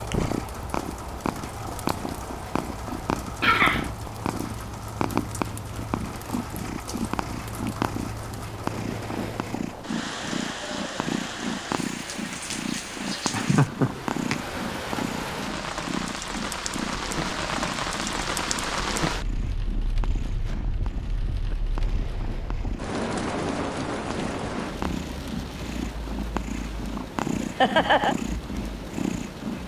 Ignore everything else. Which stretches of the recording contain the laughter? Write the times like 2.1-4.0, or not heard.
3.4-3.9, 13.3-14.3, 27.4-28.1.